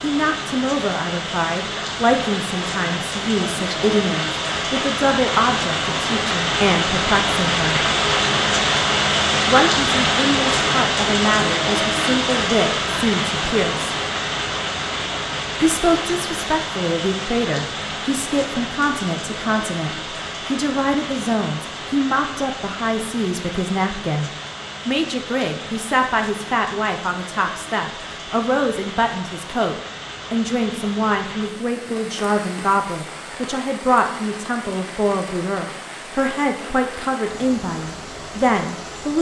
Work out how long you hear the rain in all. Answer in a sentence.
The rain can be heard for 39 seconds in total.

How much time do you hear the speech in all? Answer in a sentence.
You can hear the speech for 36 seconds altogether.